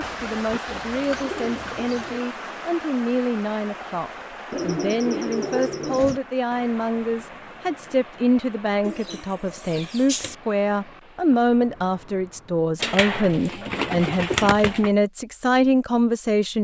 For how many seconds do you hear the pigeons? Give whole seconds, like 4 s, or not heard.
7 s.